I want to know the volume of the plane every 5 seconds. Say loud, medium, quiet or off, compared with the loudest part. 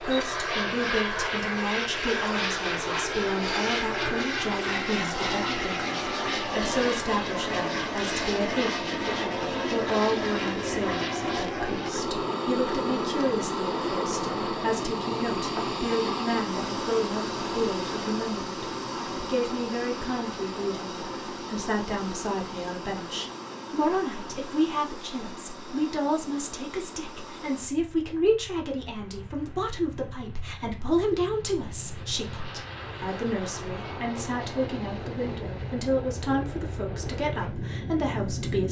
loud, loud, loud, loud, medium, quiet, medium, medium.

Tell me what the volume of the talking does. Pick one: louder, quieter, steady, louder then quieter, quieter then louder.
steady.